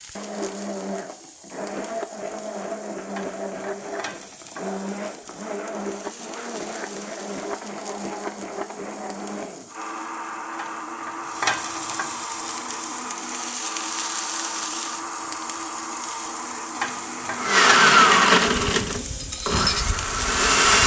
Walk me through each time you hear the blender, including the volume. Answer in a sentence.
The blender can be heard from 0.0 to 20.8 s, getting louder.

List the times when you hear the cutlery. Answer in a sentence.
The cutlery can be heard from 18.4 to 20.8 s.